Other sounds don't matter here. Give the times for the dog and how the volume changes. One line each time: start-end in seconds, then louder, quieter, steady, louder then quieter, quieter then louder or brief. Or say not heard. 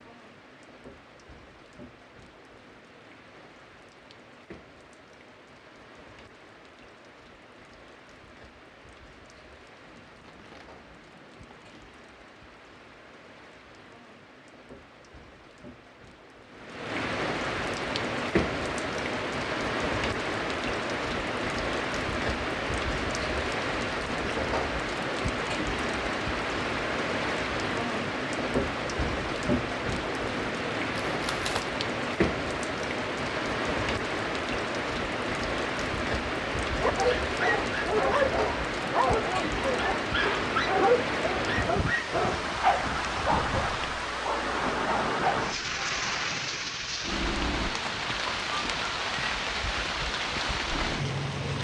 36.8-45.5 quieter.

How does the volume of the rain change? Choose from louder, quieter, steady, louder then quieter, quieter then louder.
louder.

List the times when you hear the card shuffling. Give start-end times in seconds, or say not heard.
9.8-11.8, 31.1-31.8.